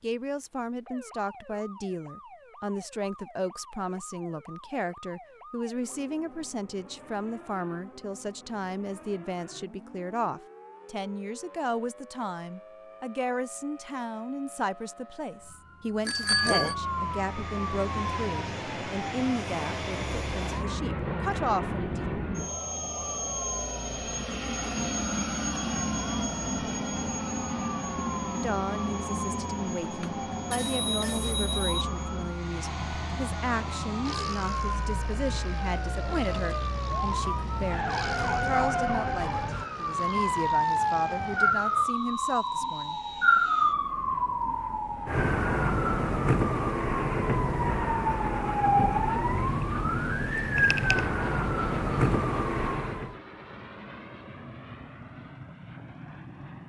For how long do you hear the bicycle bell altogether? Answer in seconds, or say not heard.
3 s.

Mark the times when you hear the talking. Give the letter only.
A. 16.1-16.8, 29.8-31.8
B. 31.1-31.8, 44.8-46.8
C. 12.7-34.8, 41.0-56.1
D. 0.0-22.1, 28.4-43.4
D.